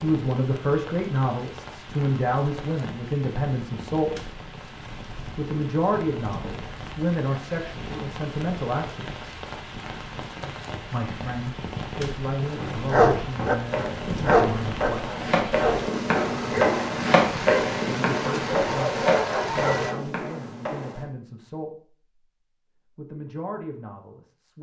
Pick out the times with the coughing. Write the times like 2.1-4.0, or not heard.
not heard.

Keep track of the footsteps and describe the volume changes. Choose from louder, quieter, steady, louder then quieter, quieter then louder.
louder then quieter.